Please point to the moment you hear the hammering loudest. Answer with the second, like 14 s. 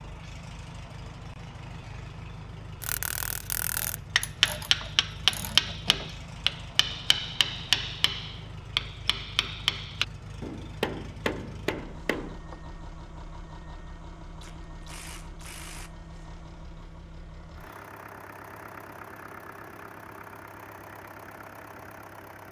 5 s.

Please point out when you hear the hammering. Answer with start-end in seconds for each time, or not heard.
2.8-12.6.